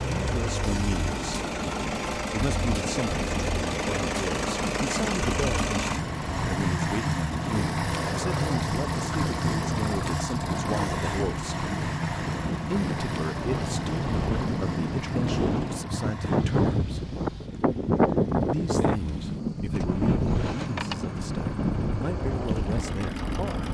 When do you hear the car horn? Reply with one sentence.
The car horn can't be heard in this clip.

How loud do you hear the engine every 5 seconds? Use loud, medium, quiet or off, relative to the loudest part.
loud, loud, loud, quiet, medium.